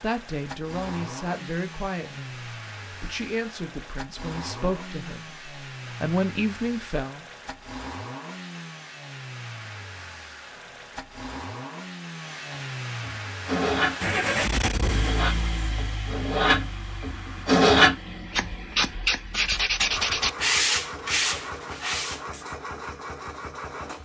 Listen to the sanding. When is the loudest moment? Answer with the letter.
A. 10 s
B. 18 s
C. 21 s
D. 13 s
B.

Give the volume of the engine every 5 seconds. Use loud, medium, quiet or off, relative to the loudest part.
medium, medium, loud, medium, medium.